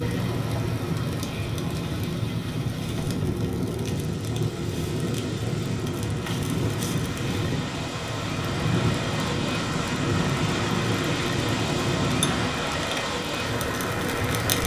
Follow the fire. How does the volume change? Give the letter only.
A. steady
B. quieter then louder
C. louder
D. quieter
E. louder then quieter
A.